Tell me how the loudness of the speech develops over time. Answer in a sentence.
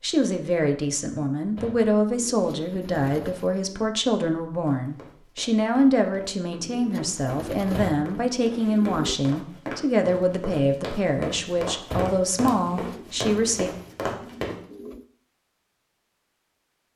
The volume of the speech stays about the same.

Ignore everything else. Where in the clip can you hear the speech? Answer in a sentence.
You can hear the speech from 0.0 to 13.7 s.